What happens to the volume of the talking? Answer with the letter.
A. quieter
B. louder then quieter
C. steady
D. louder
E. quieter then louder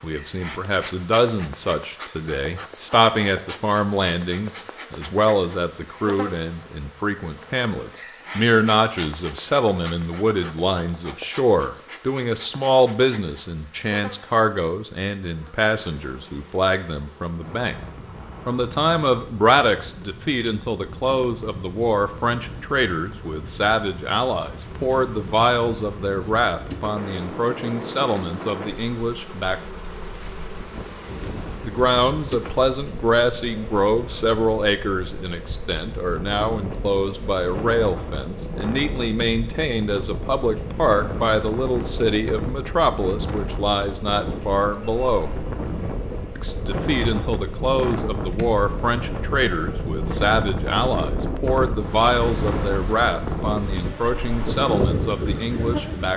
C.